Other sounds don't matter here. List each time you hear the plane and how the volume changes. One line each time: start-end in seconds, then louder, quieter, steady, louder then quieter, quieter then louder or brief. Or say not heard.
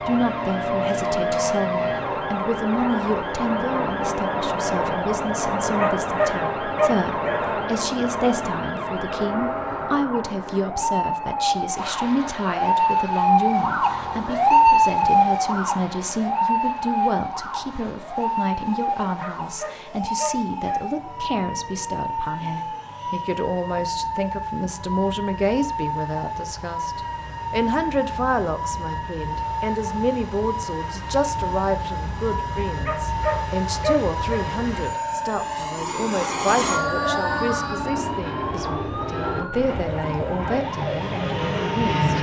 0.0-42.1 quieter then louder.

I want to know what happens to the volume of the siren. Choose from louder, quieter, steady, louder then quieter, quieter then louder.
louder then quieter.